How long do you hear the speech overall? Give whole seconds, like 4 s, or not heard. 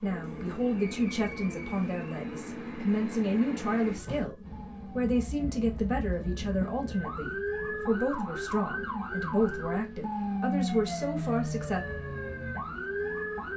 12 s.